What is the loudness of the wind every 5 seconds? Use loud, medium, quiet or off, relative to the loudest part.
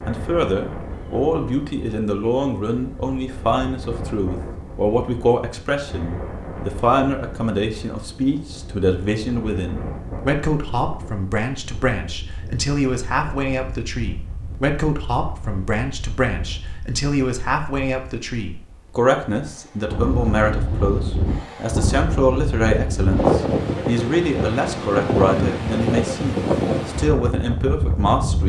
quiet, quiet, quiet, quiet, loud, loud.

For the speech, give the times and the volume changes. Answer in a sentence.
The speech can be heard from 0.1 to 28.4 s, at a steady volume.